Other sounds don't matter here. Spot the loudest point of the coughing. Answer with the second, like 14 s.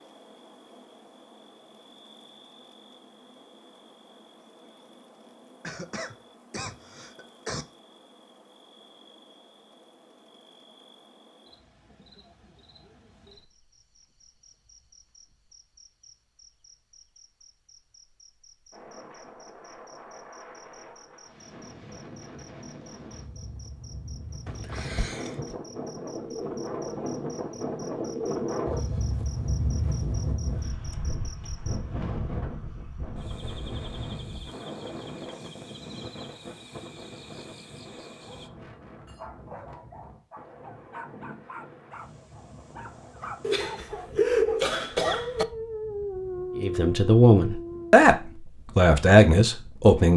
44 s.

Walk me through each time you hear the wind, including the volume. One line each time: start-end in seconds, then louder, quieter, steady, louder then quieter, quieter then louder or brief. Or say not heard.
18.7-50.0 louder then quieter.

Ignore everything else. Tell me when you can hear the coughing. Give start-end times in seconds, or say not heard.
5.6-7.7, 24.4-25.6, 43.4-45.5.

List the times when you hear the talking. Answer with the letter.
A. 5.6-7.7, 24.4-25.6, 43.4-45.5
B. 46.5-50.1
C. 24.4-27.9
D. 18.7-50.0
B.